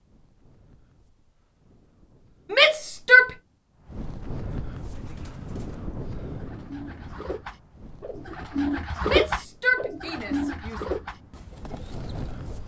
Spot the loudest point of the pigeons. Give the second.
9 s.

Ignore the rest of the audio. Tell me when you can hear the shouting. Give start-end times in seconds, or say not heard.
2.5-3.3, 9.1-10.8.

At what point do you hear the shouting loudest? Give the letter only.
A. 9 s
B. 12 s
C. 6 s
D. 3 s
D.